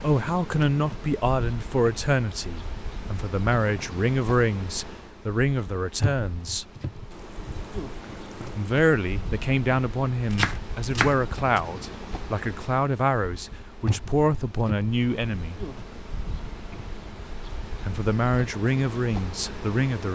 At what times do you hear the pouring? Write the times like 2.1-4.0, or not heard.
7.1-8.7.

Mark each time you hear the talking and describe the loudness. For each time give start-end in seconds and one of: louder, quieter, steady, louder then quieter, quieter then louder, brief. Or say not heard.
0.0-6.7 steady
8.6-15.6 steady
17.9-20.1 brief.